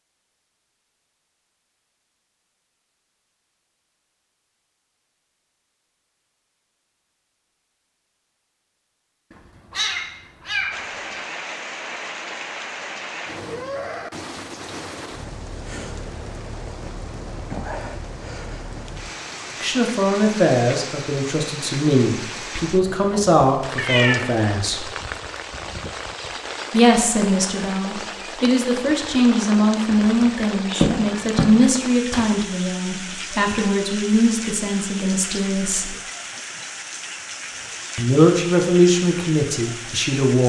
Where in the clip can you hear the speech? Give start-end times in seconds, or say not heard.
19.6-24.9, 26.7-35.9, 38.0-40.4.